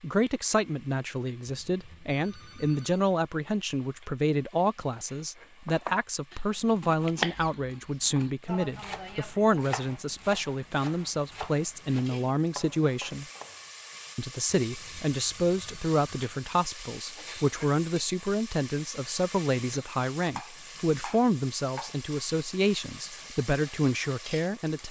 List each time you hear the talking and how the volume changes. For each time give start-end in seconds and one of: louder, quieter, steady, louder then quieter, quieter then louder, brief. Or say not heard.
0.0-13.2 steady
14.2-24.8 steady.